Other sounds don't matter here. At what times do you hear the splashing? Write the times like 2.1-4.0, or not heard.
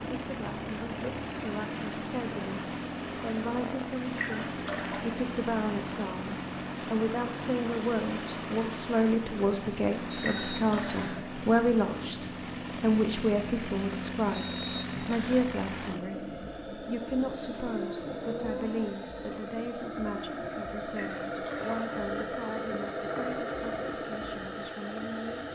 4.2-5.2, 10.2-11.3, 20.9-21.8.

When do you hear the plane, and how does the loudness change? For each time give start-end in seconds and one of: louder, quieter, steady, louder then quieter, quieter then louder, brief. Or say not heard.
0.0-25.5 steady.